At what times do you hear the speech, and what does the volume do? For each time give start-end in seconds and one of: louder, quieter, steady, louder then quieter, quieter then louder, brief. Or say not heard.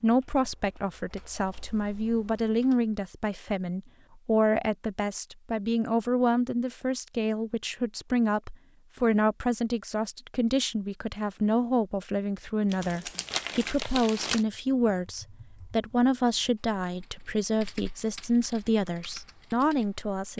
0.0-20.3 steady.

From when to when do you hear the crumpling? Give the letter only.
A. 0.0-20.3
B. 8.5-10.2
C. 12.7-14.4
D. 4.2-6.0
C.